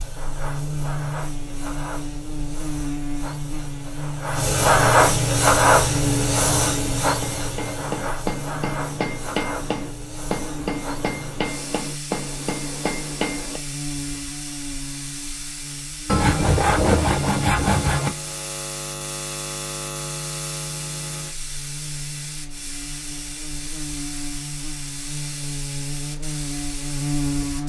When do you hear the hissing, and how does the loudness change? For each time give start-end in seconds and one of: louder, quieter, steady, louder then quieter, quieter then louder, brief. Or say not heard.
0.0-27.6 quieter.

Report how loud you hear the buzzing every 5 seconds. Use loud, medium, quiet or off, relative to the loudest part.
loud, loud, medium, medium, medium, loud.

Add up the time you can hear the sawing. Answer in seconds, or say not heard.
2 s.